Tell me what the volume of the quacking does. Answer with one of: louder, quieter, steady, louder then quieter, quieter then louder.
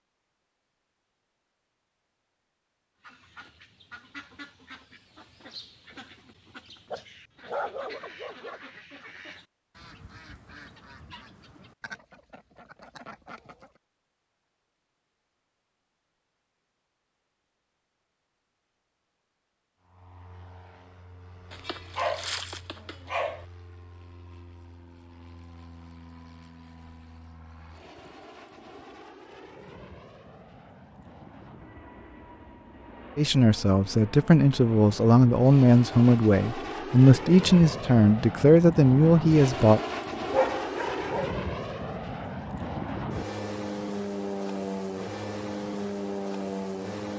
steady.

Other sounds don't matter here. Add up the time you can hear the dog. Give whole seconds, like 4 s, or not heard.
5 s.